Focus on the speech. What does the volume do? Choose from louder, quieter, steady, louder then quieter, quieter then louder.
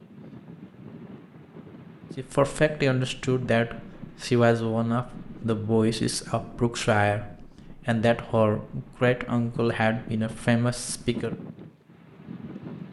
steady.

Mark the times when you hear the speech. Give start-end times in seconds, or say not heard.
2.1-11.3.